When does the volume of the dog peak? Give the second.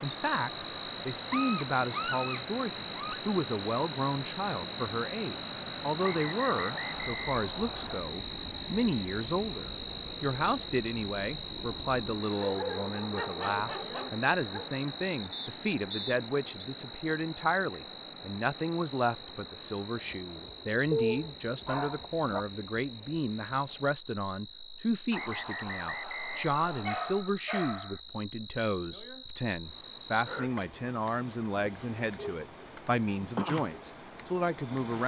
21 s.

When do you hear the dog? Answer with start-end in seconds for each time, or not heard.
1.3-3.2, 12.3-14.7, 20.9-22.4, 26.6-28.0.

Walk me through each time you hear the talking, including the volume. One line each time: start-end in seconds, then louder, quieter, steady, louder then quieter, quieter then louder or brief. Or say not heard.
0.0-35.0 steady.